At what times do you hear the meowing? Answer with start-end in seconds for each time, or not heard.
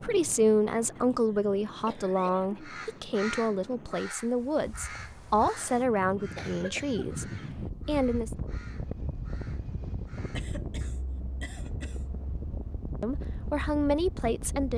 not heard.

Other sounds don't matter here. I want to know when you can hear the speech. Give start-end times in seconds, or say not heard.
0.0-7.2, 7.8-8.3, 13.0-14.7.